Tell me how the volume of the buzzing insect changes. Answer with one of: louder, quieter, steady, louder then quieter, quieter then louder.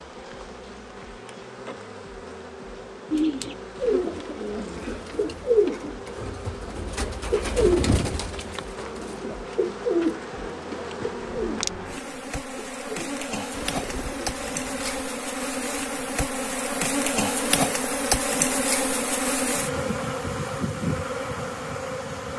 louder.